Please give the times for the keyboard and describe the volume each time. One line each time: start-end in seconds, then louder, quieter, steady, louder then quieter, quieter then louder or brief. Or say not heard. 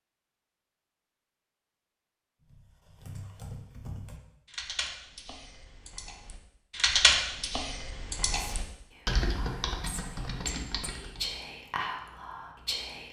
2.5-11.4 louder then quieter.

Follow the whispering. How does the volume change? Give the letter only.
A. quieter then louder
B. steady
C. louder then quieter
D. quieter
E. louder
C.